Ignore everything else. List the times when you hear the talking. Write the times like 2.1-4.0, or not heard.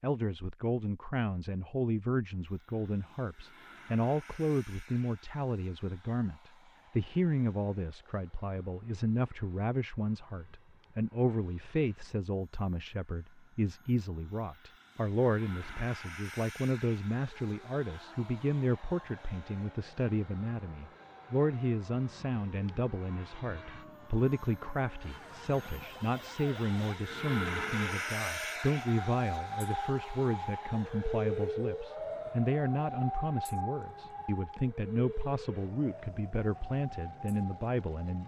0.0-38.2.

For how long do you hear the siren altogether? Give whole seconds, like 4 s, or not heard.
21 s.